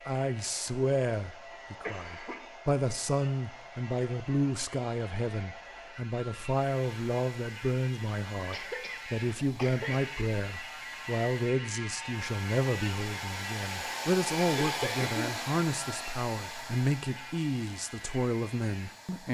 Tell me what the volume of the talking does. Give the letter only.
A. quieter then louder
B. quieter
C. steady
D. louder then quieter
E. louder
C.